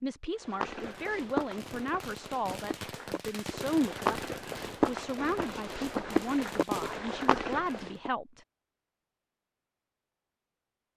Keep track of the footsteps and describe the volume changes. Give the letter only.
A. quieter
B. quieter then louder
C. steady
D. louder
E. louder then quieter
B.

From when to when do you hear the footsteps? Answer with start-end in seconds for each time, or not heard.
0.4-8.1.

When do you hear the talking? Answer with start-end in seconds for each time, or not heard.
0.0-8.4.